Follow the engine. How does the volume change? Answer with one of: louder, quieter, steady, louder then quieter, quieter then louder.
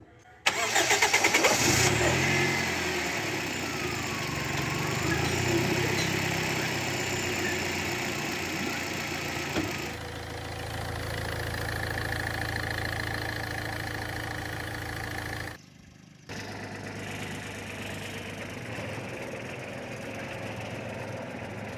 quieter.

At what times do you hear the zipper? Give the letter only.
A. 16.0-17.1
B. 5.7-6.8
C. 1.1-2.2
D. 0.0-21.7
C.